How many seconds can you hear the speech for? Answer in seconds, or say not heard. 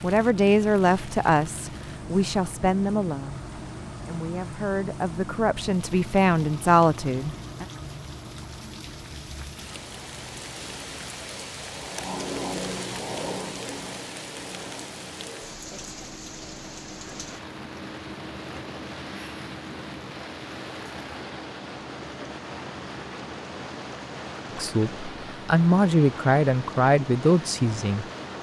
11 s.